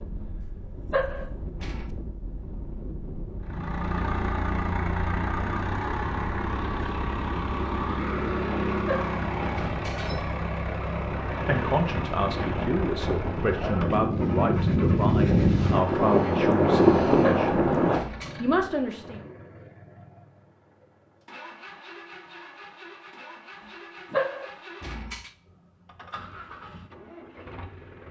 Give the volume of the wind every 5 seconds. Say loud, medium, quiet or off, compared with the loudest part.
quiet, quiet, medium, loud, off, off.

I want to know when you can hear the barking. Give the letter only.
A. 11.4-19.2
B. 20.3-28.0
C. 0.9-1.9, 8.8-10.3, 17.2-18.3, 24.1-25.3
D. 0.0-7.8
C.